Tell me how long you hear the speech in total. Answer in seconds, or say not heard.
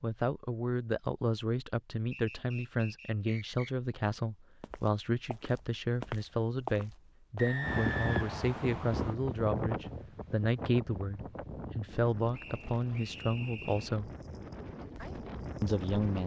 15 s.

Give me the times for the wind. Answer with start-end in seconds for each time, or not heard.
7.6-16.2.